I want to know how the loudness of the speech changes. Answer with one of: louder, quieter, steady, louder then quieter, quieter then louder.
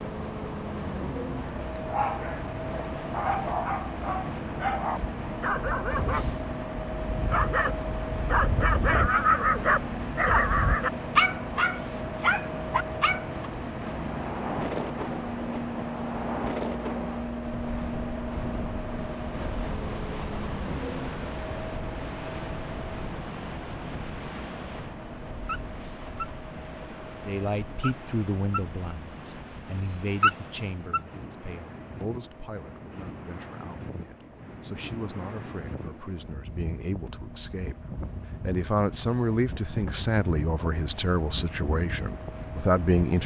quieter then louder.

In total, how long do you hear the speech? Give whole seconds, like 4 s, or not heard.
16 s.